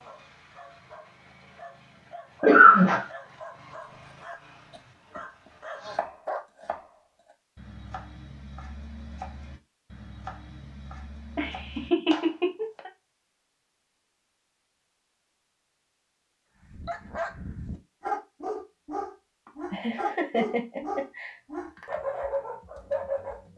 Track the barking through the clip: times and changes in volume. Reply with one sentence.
The barking can be heard from 0.0 to 6.4 s, getting louder; and from 16.6 to 23.5 s, at a steady volume.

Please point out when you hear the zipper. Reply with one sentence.
The zipper can't be heard in this clip.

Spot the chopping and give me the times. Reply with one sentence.
The chopping can be heard from 3.9 to 12.8 s.